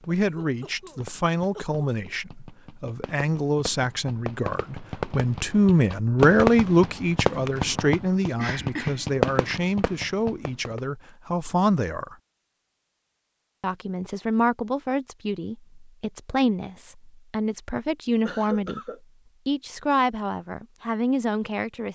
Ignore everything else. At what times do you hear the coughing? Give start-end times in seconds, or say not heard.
0.1-1.8, 8.3-9.6, 18.2-19.0.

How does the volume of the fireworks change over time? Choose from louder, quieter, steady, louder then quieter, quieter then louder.
louder.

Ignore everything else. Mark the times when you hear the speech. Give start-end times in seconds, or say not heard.
0.1-12.2, 13.6-18.8, 19.4-21.9.